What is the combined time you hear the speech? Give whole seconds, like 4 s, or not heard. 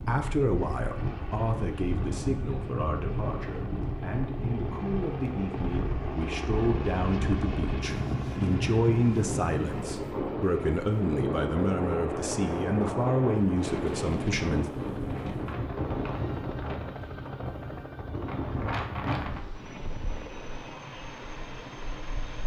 15 s.